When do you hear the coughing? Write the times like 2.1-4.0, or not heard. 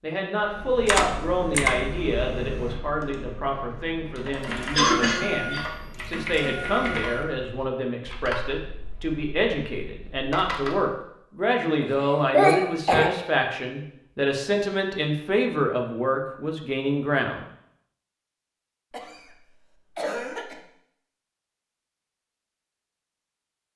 4.8-5.7, 11.8-13.1, 18.9-20.6.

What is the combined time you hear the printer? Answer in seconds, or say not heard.
3 s.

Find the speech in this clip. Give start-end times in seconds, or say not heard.
0.0-17.4.